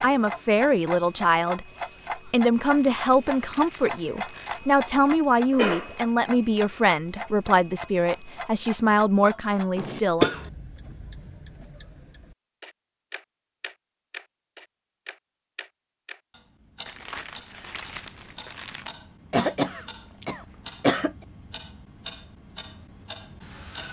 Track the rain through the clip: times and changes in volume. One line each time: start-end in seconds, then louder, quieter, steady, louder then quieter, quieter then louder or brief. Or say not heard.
not heard.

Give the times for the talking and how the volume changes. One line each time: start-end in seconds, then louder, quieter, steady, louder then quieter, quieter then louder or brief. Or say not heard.
0.0-10.3 steady.